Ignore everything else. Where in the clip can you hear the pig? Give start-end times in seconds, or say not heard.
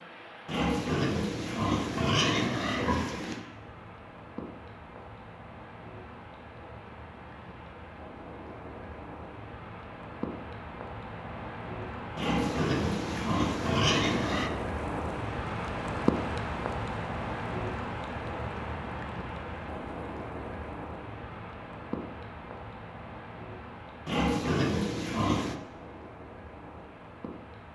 0.5-3.5, 12.2-14.5, 24.1-25.6.